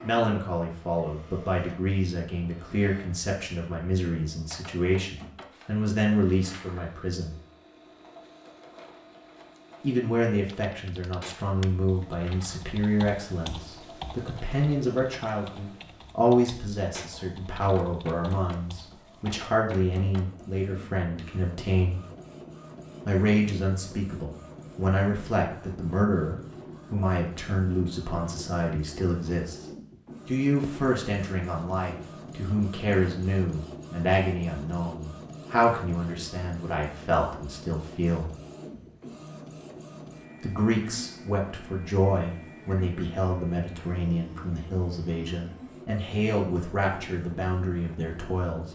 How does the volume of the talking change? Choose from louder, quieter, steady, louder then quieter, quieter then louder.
steady.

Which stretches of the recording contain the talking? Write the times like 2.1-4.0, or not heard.
0.0-7.3, 9.8-22.0, 23.1-29.6, 30.2-38.3, 40.4-48.6.